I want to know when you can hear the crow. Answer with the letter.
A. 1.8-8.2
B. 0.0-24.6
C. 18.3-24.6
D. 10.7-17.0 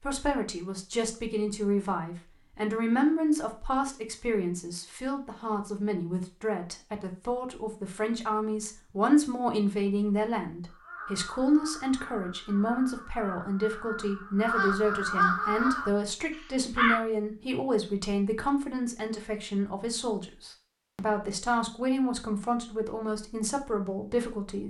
D.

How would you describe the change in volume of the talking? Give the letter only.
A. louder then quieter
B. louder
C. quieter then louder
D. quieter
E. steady
E.